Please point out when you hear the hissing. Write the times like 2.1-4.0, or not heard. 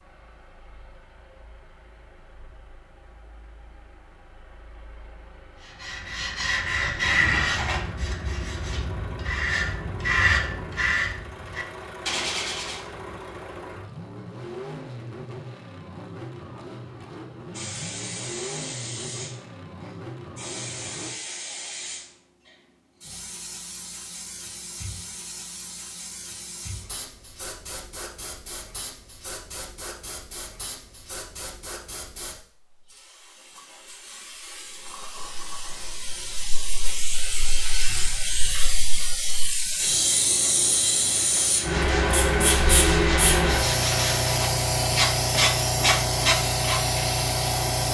17.5-47.8.